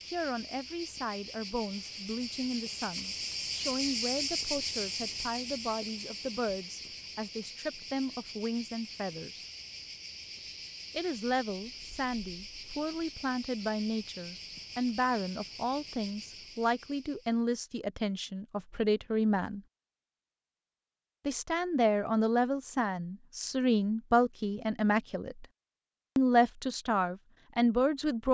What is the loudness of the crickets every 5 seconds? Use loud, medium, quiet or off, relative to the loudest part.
loud, medium, medium, medium, off, off.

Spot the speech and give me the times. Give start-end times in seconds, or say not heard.
0.1-9.4, 10.9-19.6, 21.2-25.4, 26.1-28.2.